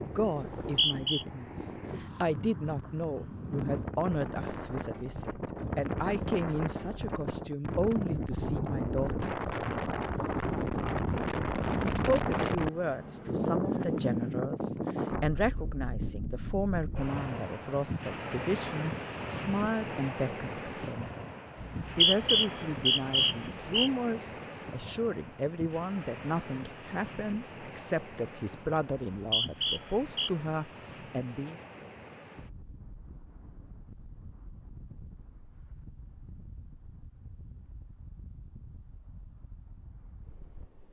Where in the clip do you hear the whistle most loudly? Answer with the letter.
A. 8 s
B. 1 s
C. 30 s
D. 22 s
D.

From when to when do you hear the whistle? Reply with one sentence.
You can hear the whistle from 0.3 to 1.2 s, from 21.6 to 23.9 s and from 28.9 to 30.3 s.